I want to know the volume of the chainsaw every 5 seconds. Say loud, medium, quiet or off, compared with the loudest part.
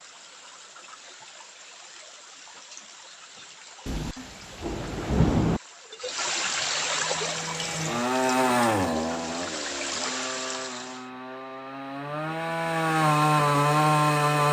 off, loud, loud.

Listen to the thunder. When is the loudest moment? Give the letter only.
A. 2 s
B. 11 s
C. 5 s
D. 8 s
C.